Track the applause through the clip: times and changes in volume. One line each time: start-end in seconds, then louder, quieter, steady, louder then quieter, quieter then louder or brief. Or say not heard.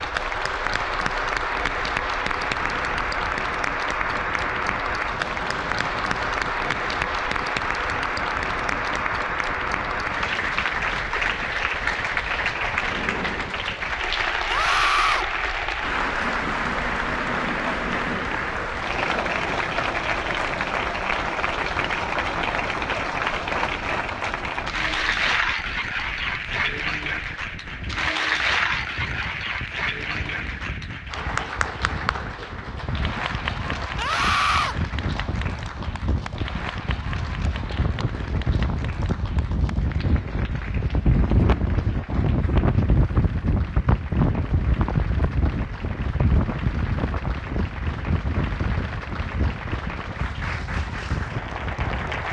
0.0-52.2 quieter.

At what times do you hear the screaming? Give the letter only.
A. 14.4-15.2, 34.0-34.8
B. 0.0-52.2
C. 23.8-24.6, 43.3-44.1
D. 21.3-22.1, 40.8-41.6
A.